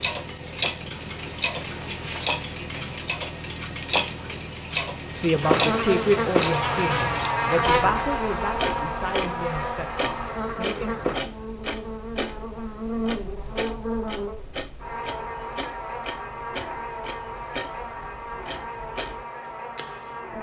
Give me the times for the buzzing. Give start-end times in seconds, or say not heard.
5.4-20.3.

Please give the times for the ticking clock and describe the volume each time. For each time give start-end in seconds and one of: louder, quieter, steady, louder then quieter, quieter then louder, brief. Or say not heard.
0.0-20.3 quieter.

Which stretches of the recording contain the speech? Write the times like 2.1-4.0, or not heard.
5.2-11.0.